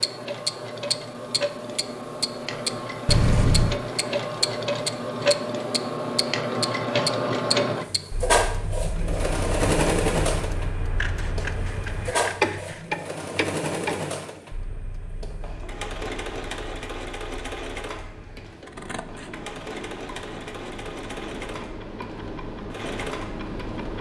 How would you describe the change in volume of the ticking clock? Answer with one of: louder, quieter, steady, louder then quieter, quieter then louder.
quieter then louder.